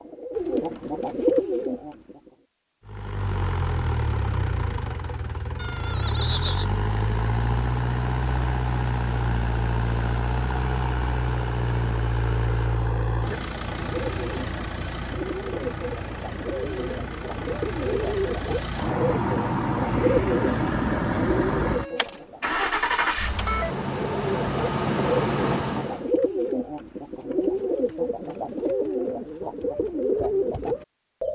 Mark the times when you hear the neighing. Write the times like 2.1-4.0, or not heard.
5.5-6.7.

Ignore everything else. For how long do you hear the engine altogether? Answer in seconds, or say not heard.
23 s.